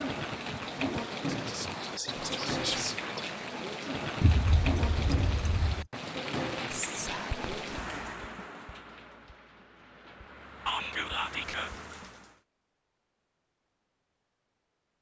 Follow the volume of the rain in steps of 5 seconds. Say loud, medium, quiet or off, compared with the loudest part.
loud, loud, medium.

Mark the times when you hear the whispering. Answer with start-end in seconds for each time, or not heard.
1.2-3.4, 6.7-8.2, 10.7-11.7.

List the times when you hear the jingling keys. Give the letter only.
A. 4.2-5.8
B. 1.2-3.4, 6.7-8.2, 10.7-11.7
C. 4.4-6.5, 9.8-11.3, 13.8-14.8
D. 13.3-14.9
A.